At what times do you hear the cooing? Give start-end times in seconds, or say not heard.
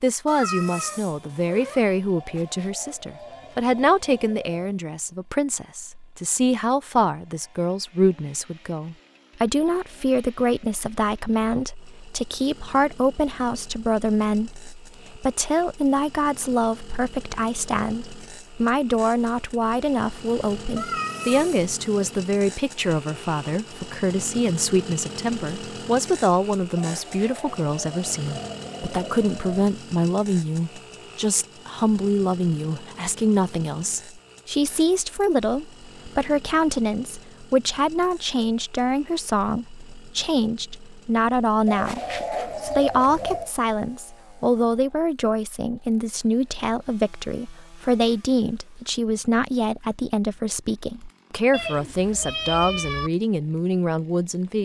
2.1-4.8, 26.8-29.6, 41.6-43.5.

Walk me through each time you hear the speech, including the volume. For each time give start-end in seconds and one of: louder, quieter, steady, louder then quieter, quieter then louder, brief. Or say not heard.
0.0-54.6 steady.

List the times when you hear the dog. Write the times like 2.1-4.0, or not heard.
not heard.